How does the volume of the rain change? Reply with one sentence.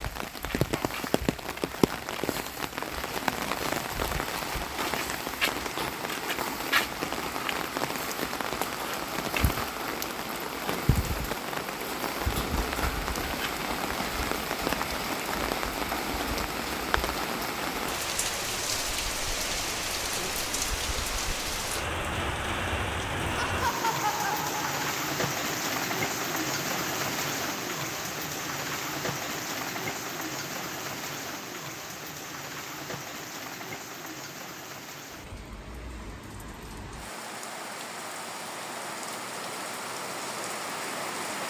The loudness of the rain goes down.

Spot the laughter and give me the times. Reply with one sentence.
The laughter can be heard from 23.4 to 24.9 s.